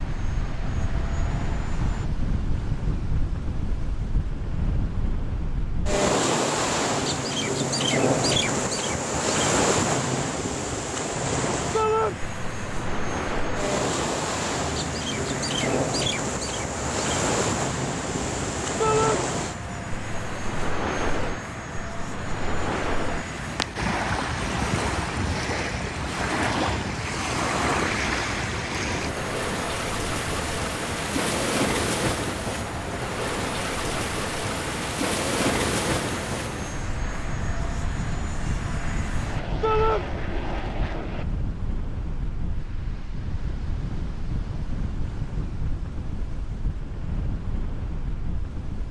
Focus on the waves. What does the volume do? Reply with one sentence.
The volume of the waves goes down.